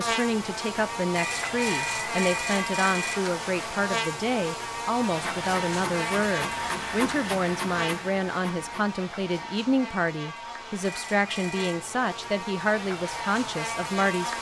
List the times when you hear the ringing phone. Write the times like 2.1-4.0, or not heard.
1.1-3.1, 10.8-11.8.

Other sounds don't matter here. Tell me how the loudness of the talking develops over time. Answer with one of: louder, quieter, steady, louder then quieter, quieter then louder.
steady.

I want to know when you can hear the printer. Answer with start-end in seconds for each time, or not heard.
5.0-9.0.